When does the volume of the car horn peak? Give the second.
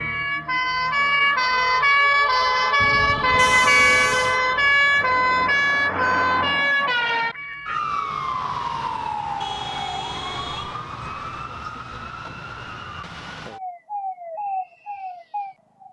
4 s.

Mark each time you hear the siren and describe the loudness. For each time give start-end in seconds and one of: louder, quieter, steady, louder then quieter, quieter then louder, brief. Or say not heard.
0.0-15.8 quieter.